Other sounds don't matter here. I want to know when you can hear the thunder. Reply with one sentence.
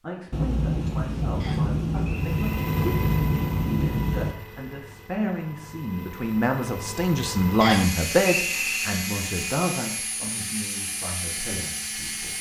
The thunder can be heard from 0.3 to 4.3 s.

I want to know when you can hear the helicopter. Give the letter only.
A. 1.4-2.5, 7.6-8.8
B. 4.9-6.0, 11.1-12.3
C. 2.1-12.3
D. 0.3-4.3
C.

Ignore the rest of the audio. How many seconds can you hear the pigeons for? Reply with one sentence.
You can't hear the pigeons here.